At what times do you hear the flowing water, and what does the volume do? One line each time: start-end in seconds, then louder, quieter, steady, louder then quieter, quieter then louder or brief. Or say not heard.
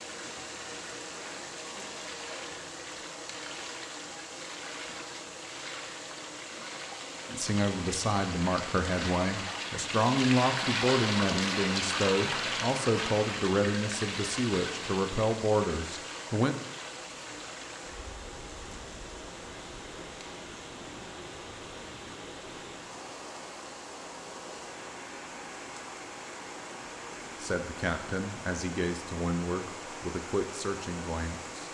0.0-31.6 louder then quieter.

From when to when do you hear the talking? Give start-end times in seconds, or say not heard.
7.2-16.6, 27.4-31.6.